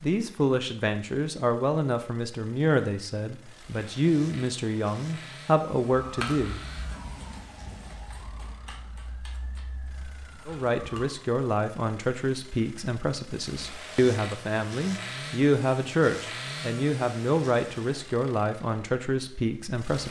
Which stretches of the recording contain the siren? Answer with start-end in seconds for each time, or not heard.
5.8-11.2.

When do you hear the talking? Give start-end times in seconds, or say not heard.
0.0-6.6, 10.4-20.0.